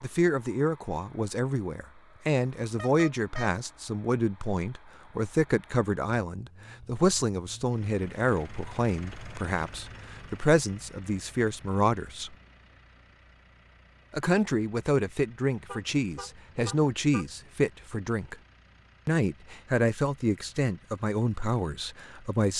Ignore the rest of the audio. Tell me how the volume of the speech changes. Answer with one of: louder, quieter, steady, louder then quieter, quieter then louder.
steady.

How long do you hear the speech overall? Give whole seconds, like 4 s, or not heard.
20 s.